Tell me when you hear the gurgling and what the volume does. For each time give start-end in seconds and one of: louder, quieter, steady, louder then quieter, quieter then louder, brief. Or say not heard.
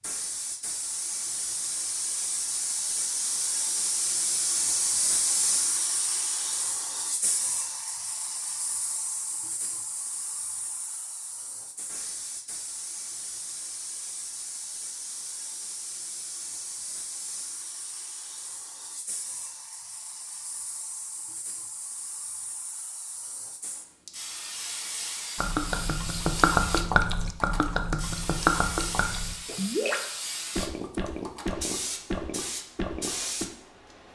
25.4-33.5 quieter.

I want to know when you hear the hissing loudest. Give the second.
5 s.